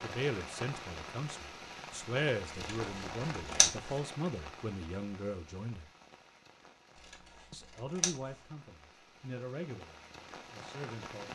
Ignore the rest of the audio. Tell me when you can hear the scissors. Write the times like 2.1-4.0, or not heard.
2.5-3.9, 7.0-8.1.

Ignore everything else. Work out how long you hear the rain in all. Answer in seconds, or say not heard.
11 s.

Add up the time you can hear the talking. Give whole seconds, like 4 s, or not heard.
10 s.